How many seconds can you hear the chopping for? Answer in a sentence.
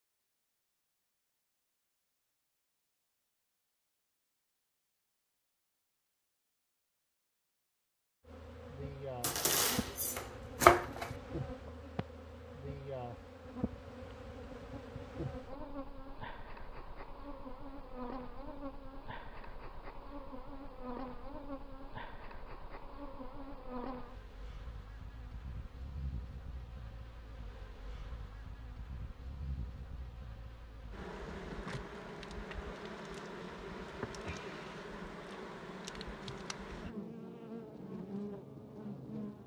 You can hear the chopping for 2 seconds altogether.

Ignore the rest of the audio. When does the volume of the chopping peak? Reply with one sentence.
The volume of the chopping peaks at 11 seconds.